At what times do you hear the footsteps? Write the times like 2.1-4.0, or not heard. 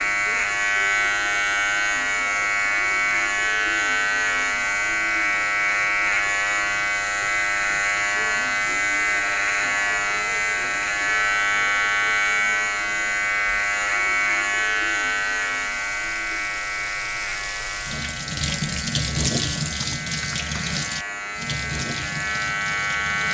not heard.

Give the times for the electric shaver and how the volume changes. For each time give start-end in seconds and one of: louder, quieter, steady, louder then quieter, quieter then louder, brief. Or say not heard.
0.0-23.2 quieter.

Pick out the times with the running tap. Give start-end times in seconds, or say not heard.
0.0-23.2.